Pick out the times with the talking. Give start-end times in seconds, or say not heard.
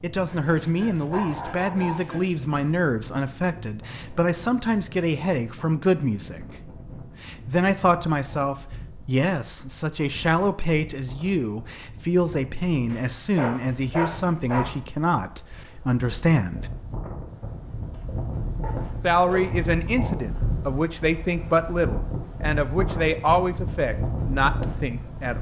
0.0-16.7, 19.0-25.3.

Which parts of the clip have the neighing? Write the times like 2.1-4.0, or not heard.
not heard.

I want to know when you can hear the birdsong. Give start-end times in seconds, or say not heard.
not heard.